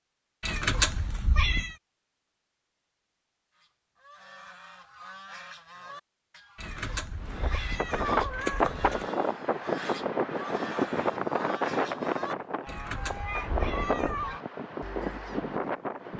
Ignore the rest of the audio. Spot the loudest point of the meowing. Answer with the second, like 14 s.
1 s.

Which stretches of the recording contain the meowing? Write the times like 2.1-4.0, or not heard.
0.4-1.8, 6.5-9.1, 12.7-14.4.